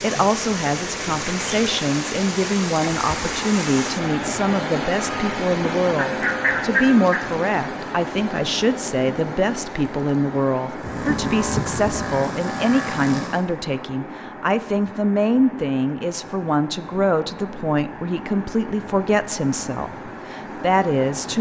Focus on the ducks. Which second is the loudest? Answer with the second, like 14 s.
7 s.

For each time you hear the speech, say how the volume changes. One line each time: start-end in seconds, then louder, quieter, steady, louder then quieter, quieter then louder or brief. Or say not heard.
0.0-21.3 steady.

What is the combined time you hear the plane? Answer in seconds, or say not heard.
3 s.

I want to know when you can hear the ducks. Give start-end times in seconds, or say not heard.
6.0-7.2, 10.8-12.1.